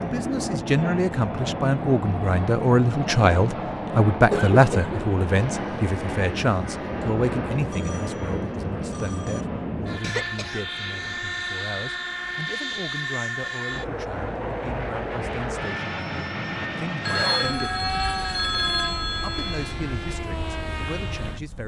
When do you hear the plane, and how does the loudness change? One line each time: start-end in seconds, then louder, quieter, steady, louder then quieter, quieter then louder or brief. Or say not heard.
0.0-21.6 steady.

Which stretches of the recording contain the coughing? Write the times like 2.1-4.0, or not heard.
4.3-5.0, 10.0-11.2, 17.1-17.8.